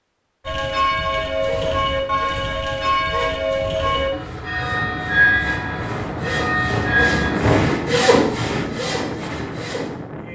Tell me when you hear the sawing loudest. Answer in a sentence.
The volume of the sawing peaks at 8 seconds.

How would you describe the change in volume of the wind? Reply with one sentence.
The loudness of the wind goes up, then down.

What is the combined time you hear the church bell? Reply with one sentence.
The church bell can be heard for 7 seconds in total.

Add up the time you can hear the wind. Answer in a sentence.
The wind can be heard for 6 seconds in total.